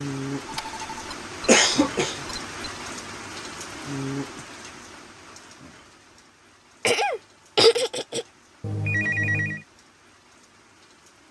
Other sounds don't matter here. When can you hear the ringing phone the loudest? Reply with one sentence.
The volume of the ringing phone peaks at 9 seconds.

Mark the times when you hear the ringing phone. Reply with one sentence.
You can hear the ringing phone from 0.5 to 1.1 s and from 8.6 to 9.7 s.